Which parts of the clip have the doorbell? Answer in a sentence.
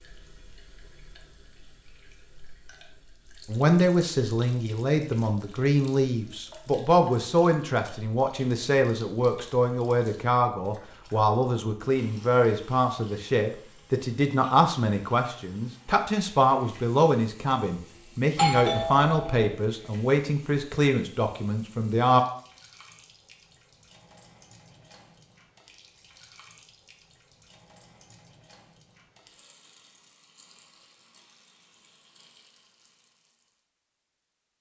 The doorbell can be heard from 18.4 to 19.4 s.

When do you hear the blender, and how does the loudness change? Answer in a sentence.
You can't hear the blender here.